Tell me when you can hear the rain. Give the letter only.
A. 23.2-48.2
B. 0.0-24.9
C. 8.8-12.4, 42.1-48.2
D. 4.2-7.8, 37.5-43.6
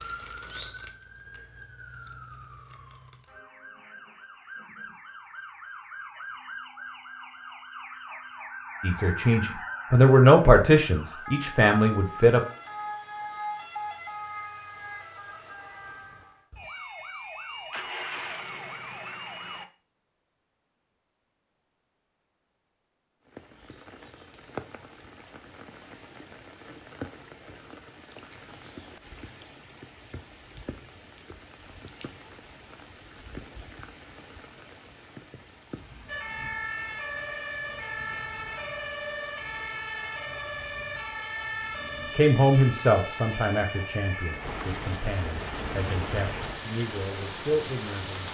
A.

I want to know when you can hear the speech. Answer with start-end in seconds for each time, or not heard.
8.8-12.4, 42.1-48.2.